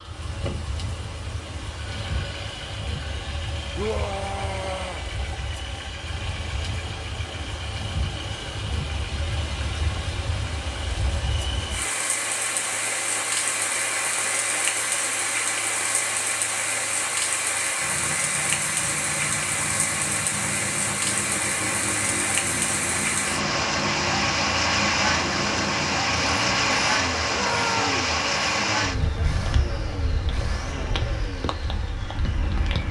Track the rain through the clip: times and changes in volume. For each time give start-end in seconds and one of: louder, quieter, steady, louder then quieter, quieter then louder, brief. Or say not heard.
0.0-32.8 louder.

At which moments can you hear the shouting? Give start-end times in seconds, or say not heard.
3.8-5.0, 27.3-27.9.